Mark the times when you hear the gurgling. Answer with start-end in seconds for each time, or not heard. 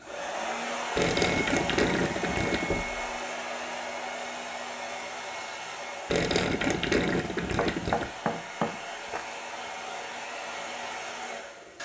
0.9-2.8, 6.1-8.1.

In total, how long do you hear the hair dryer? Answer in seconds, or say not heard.
12 s.